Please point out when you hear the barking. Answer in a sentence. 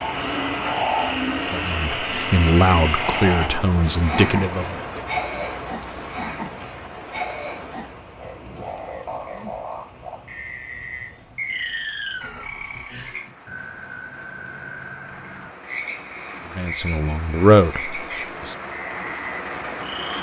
You can't hear the barking here.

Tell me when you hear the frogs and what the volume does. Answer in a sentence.
The frogs can be heard from 0.0 to 20.1 s, getting quieter.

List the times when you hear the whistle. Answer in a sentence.
You can hear the whistle from 11.3 to 12.5 s.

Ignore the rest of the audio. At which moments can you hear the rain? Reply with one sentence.
You can hear the rain from 0.0 to 20.1 s.